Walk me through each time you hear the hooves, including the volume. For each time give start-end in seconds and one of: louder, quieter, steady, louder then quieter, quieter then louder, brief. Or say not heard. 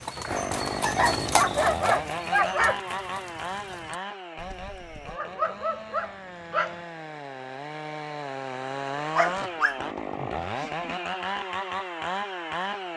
0.0-5.2 quieter.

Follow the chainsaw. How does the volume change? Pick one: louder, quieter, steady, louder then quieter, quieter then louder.
quieter then louder.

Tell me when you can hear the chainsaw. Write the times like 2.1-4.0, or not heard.
0.2-12.9.